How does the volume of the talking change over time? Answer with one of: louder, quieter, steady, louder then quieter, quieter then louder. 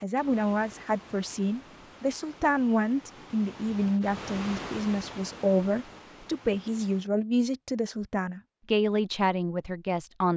steady.